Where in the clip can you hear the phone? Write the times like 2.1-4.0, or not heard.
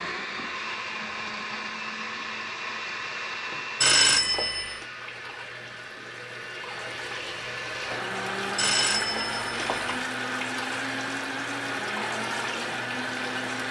3.8-4.8, 8.6-9.9.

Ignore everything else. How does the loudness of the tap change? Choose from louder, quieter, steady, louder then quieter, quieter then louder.
louder.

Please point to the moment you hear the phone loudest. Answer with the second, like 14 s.
4 s.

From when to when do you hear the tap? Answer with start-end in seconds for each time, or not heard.
0.2-13.6.